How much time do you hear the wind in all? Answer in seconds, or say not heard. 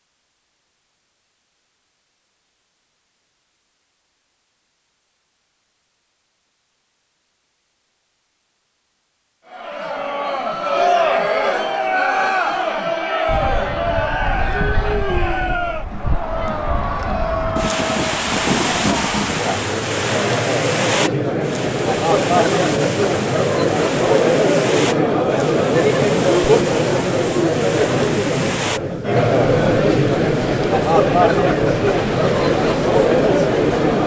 21 s.